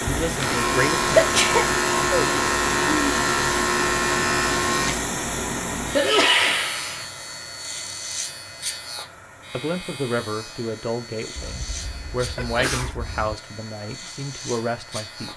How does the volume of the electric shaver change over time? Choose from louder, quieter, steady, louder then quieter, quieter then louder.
quieter.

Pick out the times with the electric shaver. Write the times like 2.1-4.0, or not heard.
0.0-15.3.